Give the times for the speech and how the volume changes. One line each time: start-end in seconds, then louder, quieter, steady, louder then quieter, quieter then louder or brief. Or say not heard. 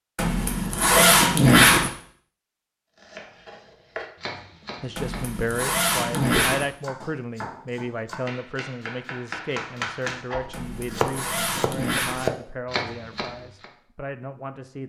4.8-14.8 quieter.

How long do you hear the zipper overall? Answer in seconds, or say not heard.
5 s.